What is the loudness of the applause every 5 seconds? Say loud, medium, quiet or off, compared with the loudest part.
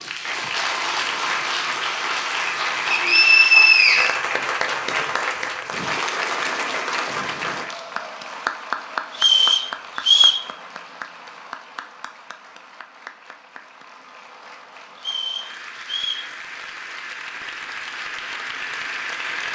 loud, loud, quiet, medium.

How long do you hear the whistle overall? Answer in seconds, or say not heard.
4 s.